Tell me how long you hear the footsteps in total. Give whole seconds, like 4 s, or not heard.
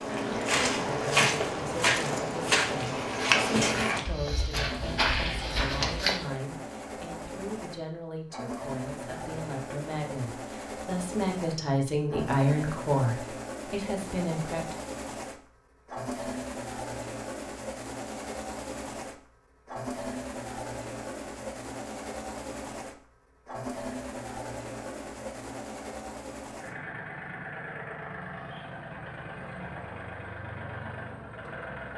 6 s.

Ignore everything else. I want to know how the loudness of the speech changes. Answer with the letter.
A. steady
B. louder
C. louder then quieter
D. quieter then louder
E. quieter
B.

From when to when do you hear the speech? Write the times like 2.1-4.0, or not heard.
0.2-14.8.